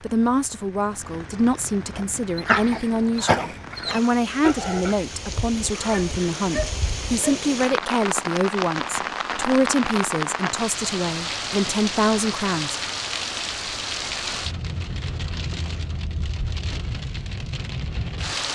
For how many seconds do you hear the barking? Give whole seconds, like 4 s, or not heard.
6 s.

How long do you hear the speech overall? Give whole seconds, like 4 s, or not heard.
13 s.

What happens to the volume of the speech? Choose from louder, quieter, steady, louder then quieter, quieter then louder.
steady.